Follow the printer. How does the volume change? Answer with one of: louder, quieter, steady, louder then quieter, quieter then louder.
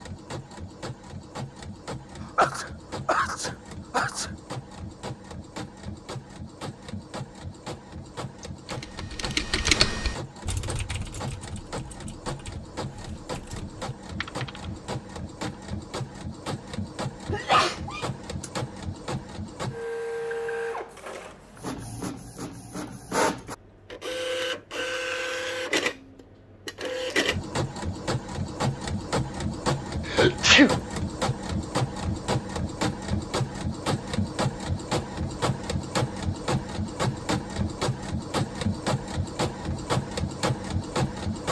louder.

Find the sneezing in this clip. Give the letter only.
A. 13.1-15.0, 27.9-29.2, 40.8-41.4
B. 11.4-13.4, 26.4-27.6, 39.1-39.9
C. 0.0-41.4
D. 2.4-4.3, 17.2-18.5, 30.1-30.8
D.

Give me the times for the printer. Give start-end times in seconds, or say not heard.
0.0-41.4.